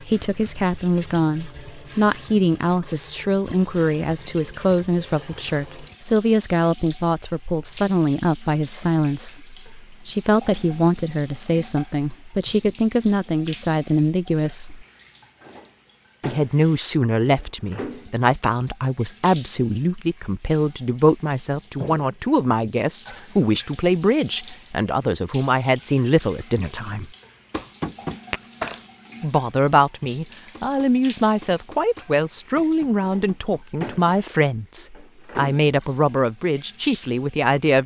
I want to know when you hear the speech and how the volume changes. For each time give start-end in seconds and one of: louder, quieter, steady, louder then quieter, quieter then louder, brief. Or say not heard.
0.0-14.8 steady
16.2-27.1 steady
29.2-37.8 steady.